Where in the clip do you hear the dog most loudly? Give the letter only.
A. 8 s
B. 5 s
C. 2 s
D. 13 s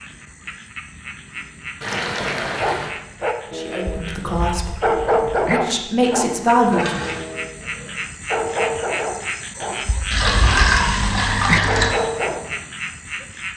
B.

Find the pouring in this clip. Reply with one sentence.
The pouring can be heard from 1.8 to 2.9 s, from 6.7 to 7.2 s and from 10.1 to 11.9 s.